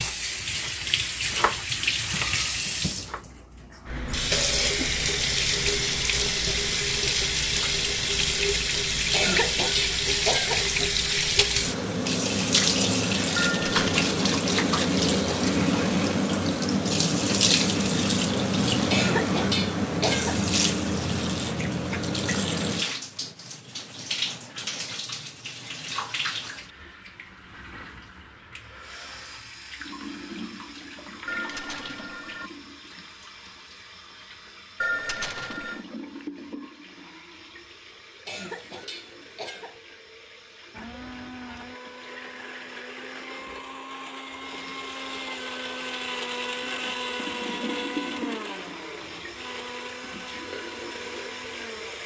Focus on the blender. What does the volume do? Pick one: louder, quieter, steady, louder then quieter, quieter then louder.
louder then quieter.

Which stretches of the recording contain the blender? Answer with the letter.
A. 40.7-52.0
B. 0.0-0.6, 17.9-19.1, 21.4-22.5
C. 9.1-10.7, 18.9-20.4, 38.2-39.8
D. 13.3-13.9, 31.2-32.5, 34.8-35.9
A.